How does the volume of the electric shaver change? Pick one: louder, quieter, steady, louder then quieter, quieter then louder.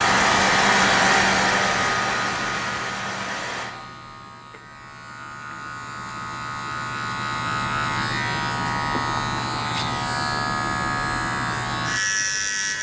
quieter then louder.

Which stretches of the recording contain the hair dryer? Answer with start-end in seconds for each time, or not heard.
0.0-3.7.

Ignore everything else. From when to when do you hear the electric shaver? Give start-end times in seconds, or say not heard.
0.0-12.7.